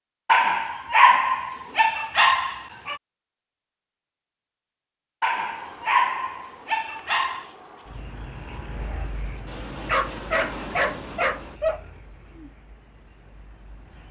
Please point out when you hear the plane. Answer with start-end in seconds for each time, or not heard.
9.4-11.6.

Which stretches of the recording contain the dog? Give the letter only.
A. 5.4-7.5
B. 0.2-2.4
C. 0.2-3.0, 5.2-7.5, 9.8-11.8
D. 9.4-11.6
C.